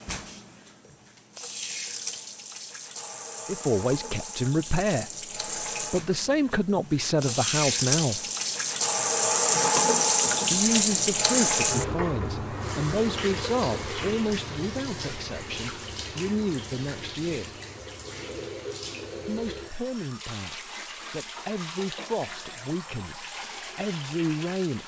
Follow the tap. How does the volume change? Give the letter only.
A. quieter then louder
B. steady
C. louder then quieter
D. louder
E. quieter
C.